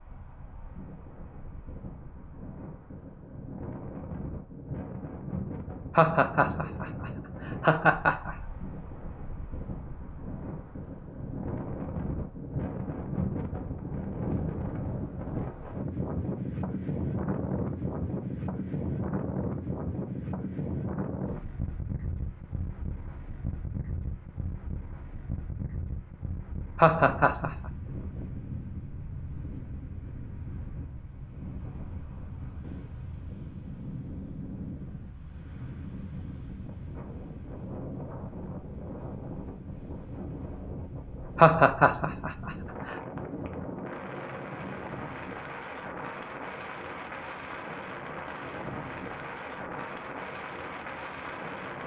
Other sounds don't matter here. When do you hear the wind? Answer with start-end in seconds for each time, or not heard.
0.0-51.8.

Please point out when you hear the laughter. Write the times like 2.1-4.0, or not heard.
6.0-8.3, 26.8-27.6, 41.4-43.0.